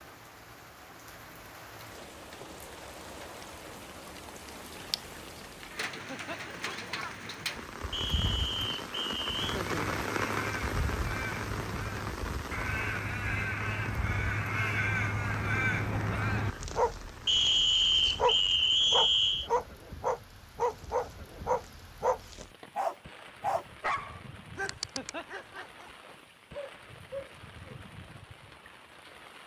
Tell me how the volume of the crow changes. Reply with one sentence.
The loudness of the crow goes up.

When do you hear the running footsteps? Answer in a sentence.
You can't hear the running footsteps here.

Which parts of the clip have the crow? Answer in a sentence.
The crow can be heard from 9.4 to 16.5 s.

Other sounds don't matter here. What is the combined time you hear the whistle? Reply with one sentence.
The whistle can be heard for 4 seconds in total.